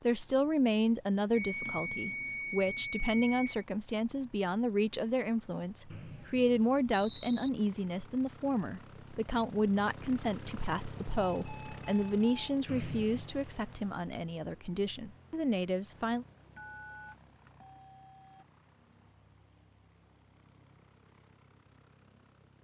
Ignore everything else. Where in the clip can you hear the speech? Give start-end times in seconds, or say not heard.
0.0-16.2.